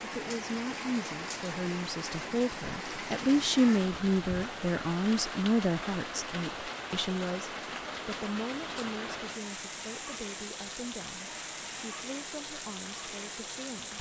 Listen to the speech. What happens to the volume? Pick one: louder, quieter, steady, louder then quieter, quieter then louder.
louder then quieter.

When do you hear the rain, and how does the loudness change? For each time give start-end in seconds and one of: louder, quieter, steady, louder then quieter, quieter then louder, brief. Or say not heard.
0.0-13.9 steady.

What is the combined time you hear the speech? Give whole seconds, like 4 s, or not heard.
14 s.